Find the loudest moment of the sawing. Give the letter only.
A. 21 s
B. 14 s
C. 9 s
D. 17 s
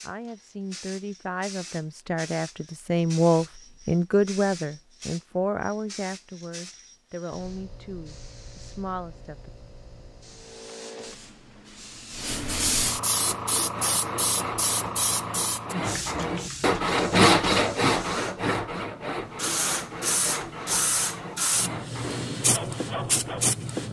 D.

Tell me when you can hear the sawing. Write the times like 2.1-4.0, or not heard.
13.1-23.6.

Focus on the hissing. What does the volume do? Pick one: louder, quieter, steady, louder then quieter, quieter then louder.
louder.